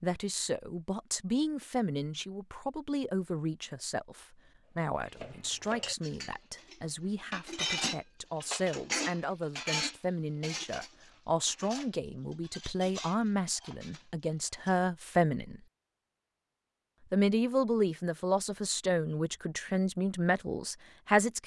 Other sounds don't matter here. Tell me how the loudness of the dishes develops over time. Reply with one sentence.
The volume of the dishes goes up, then down.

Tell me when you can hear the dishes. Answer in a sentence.
The dishes can be heard from 4.8 to 14.8 s.